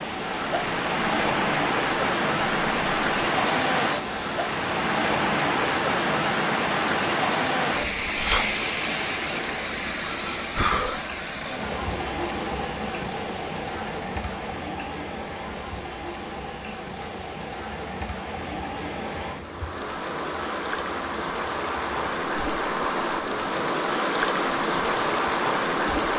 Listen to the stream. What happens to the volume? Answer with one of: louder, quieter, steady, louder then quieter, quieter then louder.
quieter then louder.